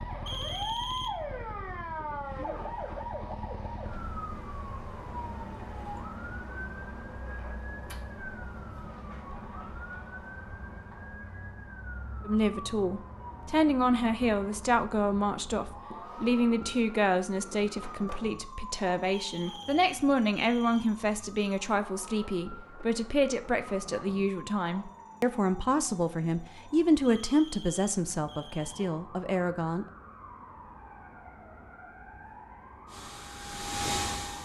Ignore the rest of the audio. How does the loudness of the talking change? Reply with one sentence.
The loudness of the talking stays about the same.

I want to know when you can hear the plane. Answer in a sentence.
You can hear the plane from 32.9 to 34.4 s.